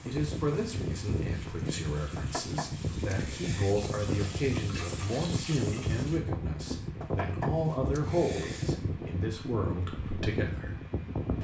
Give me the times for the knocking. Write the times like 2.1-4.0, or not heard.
2.1-3.8, 7.0-8.8.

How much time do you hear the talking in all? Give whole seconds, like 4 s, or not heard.
11 s.